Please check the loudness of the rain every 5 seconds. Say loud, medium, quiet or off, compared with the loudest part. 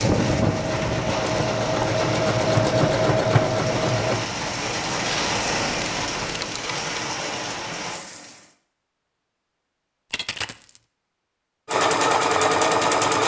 loud, loud, off.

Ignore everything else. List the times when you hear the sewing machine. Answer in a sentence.
The sewing machine can be heard from 0.0 to 4.2 s and from 11.7 to 13.2 s.